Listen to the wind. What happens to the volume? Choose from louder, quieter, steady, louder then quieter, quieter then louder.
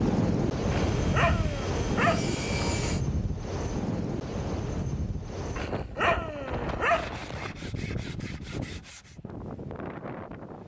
quieter.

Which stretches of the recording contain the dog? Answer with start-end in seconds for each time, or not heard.
0.7-2.6, 5.5-7.5.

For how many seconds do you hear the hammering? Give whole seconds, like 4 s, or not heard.
not heard.